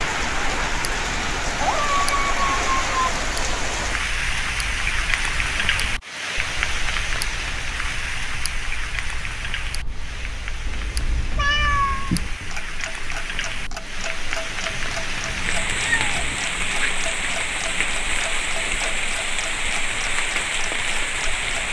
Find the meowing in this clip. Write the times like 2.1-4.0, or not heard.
1.6-3.0, 10.7-12.3, 14.7-16.4.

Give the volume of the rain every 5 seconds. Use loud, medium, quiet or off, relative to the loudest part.
loud, loud, medium, loud, loud.